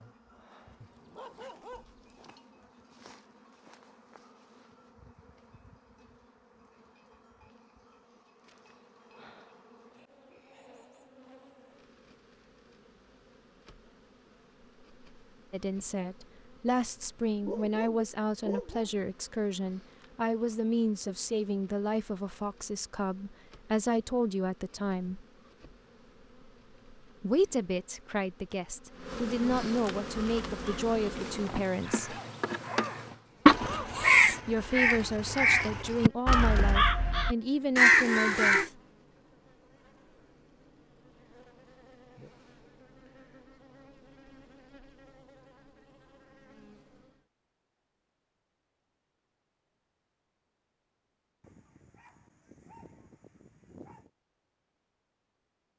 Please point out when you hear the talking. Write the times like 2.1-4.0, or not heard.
15.5-25.2, 27.2-32.1, 34.5-38.8.